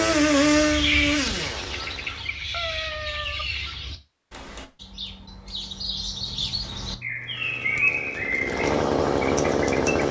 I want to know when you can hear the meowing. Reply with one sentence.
The meowing can be heard from 2.5 to 3.5 s and from 6.1 to 8.1 s.